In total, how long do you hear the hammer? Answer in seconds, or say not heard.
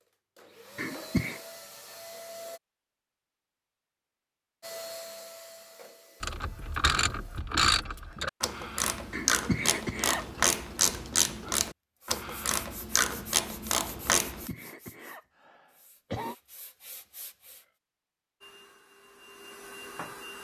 not heard.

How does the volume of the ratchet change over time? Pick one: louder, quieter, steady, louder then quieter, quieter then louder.
steady.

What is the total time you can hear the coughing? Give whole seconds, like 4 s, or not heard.
4 s.